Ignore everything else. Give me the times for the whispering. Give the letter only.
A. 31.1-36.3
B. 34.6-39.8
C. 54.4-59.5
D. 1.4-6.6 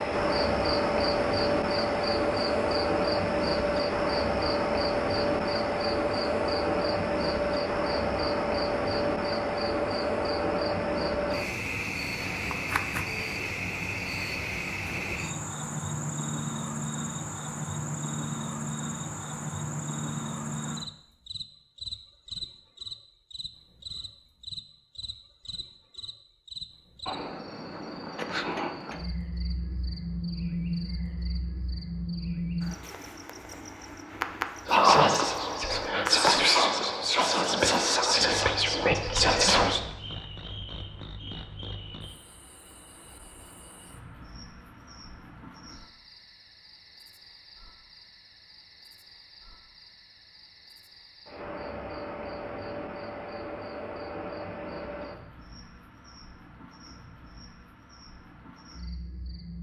B.